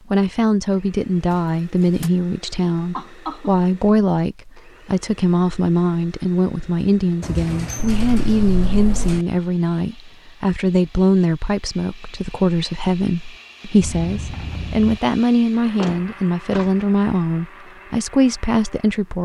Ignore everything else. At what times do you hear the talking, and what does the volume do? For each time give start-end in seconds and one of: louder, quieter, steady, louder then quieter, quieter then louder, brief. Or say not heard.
0.1-19.1 steady.